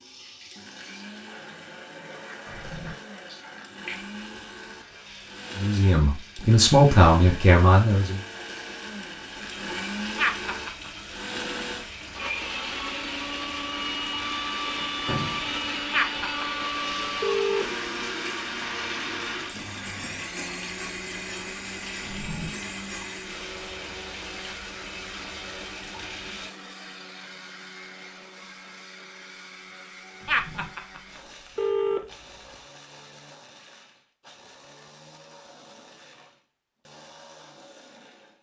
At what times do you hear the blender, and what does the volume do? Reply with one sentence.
You can hear the blender from 0.1 to 38.3 s, getting louder then quieter.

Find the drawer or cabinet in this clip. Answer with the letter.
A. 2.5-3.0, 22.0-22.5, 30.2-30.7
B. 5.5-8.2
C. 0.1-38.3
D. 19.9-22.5
A.